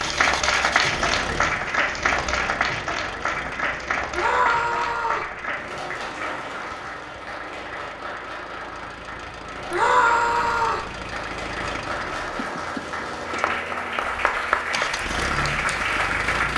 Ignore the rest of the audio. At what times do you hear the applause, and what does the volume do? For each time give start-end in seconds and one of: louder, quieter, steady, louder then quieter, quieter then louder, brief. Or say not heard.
0.0-16.5 quieter then louder.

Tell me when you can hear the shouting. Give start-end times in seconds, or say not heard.
4.1-5.3, 9.7-10.9.